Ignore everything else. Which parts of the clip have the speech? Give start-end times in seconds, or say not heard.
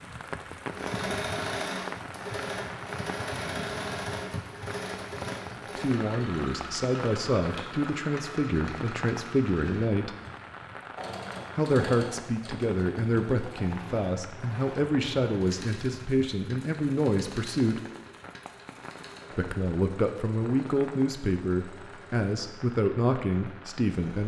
5.8-10.1, 11.6-17.8, 19.4-24.2.